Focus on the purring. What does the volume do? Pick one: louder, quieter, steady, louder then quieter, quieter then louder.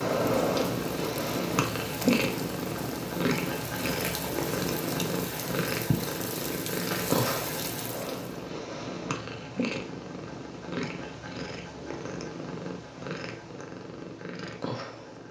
quieter.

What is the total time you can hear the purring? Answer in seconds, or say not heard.
15 s.